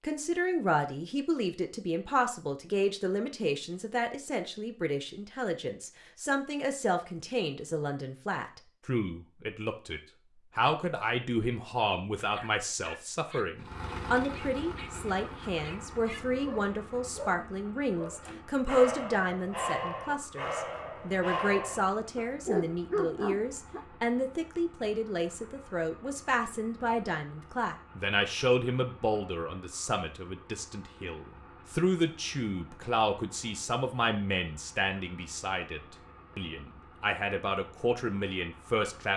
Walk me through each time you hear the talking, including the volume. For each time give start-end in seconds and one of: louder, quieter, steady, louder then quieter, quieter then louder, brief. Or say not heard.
0.0-39.1 steady.